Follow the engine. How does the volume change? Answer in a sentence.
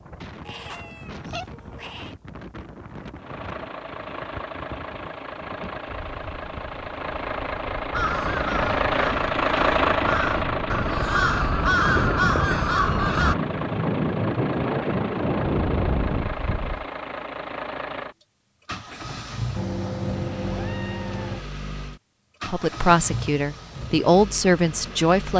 The volume of the engine goes up, then down.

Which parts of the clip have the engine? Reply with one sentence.
You can hear the engine from 3.1 to 25.3 s.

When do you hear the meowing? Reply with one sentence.
The meowing can be heard from 0.5 to 2.1 s and from 19.6 to 21.4 s.